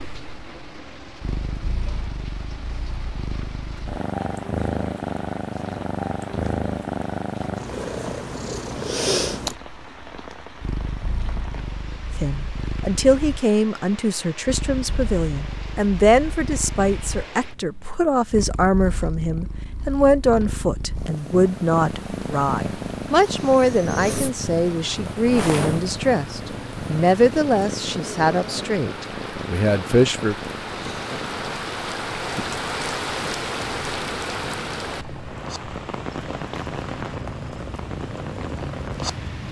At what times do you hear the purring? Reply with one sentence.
You can hear the purring from 0.0 to 39.4 s.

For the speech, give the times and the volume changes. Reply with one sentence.
You can hear the speech from 12.2 to 30.4 s, at a steady volume.